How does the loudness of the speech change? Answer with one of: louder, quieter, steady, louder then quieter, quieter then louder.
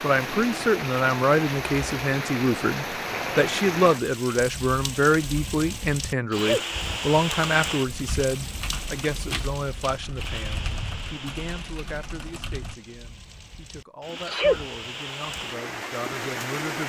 quieter.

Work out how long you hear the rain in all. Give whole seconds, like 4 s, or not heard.
17 s.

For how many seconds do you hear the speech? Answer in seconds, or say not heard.
17 s.